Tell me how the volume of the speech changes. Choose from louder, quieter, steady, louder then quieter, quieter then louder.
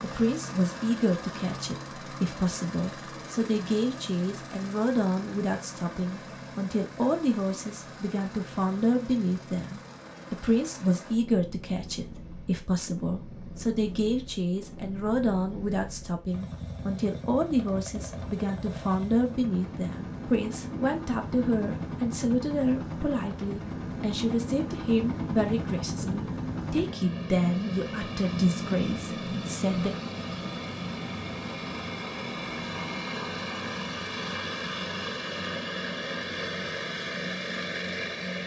steady.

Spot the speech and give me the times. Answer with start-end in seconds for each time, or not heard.
0.0-29.9.